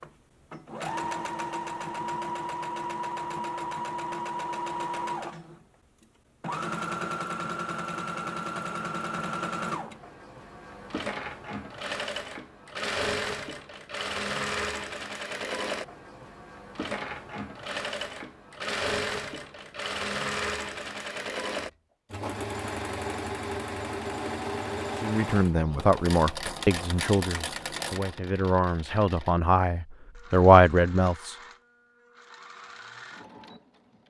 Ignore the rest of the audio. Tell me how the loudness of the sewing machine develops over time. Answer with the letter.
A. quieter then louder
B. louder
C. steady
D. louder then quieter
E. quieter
E.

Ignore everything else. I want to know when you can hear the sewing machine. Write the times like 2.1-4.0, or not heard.
0.0-34.0.